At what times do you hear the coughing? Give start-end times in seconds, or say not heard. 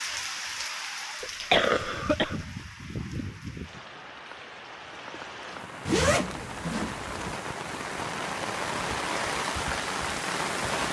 1.2-2.5.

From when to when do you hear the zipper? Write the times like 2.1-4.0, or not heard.
5.8-7.4.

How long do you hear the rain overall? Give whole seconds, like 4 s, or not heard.
11 s.